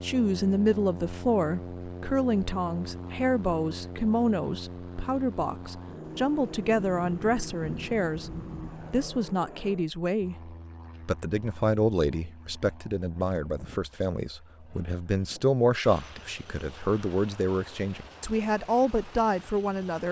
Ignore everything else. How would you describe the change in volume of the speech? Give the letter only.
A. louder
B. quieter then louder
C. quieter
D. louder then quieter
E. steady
E.